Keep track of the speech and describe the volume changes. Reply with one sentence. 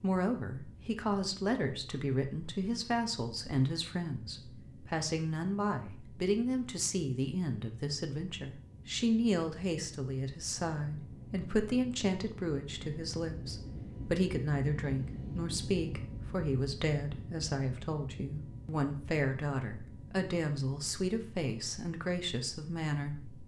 The loudness of the speech stays about the same.